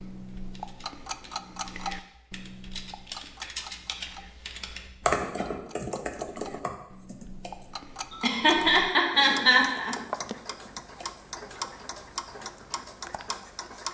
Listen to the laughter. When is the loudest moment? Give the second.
9 s.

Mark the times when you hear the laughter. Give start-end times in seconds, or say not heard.
8.1-9.9.